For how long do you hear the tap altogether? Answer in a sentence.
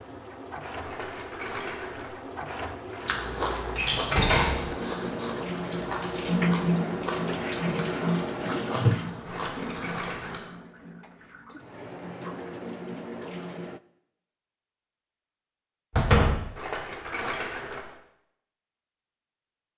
The tap can be heard for 14 seconds in total.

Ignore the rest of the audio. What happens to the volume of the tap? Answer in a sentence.
The volume of the tap goes up, then down.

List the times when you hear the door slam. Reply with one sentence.
The door slam can be heard from 3.8 to 4.7 s and from 15.9 to 16.4 s.